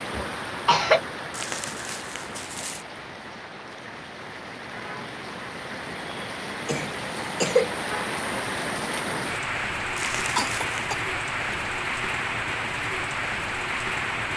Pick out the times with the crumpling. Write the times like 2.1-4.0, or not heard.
1.3-2.9, 9.9-10.8.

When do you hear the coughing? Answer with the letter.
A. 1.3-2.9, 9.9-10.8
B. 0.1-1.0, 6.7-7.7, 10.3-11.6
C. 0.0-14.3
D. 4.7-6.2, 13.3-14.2
B.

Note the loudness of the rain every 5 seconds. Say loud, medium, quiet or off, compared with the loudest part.
medium, loud, loud.